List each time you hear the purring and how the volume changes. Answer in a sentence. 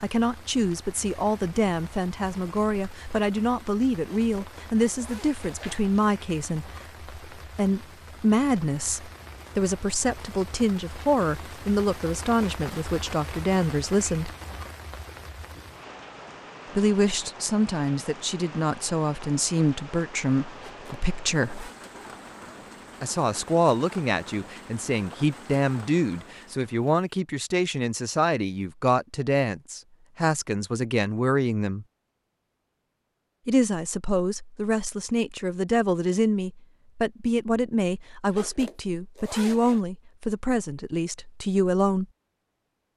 The purring can't be heard in this clip.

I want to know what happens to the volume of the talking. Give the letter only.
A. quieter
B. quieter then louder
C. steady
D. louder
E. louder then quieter
C.